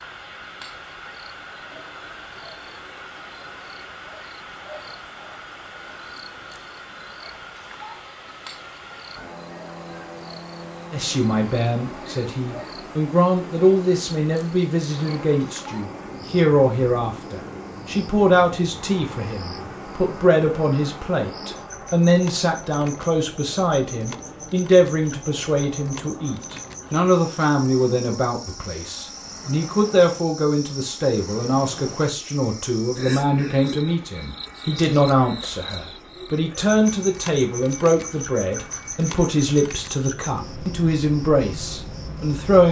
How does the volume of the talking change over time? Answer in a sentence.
The volume of the talking stays about the same.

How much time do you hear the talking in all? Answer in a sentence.
You can hear the talking for 32 seconds altogether.